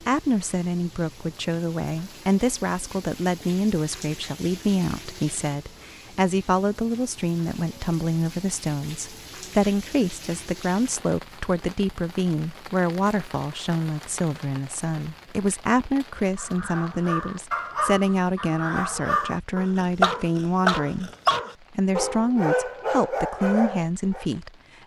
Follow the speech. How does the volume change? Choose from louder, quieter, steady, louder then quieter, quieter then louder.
steady.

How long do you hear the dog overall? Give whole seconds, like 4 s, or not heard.
8 s.